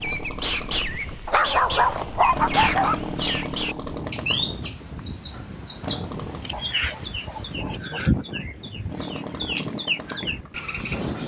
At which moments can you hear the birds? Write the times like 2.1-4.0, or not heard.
0.0-11.2.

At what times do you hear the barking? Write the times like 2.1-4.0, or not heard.
1.2-3.0, 6.5-8.0.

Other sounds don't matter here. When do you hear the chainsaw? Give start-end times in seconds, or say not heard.
0.0-6.5, 8.8-11.2.